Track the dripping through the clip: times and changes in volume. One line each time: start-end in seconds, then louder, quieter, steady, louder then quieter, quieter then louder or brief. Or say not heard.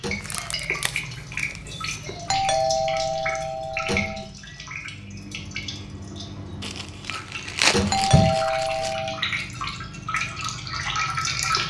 0.0-11.6 quieter then louder.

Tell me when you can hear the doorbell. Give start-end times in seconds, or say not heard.
2.2-4.2, 7.9-9.2.